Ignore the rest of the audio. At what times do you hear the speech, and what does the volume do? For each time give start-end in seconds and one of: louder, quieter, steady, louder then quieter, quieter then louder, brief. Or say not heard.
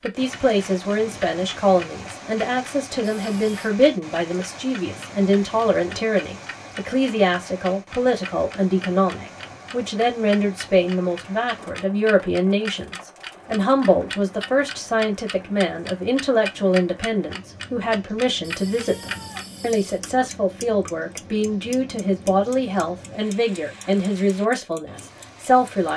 0.0-25.9 steady.